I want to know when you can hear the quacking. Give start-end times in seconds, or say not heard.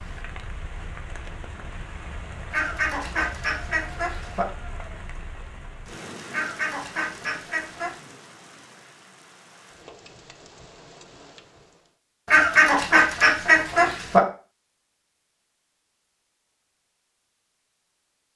2.5-4.5, 6.3-8.0, 12.2-14.2.